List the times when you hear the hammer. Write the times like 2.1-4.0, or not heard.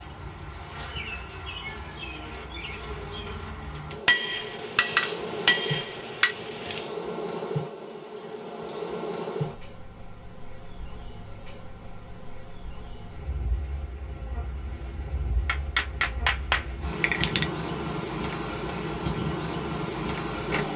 4.0-6.9, 15.4-17.4.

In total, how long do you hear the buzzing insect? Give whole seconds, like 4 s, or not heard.
21 s.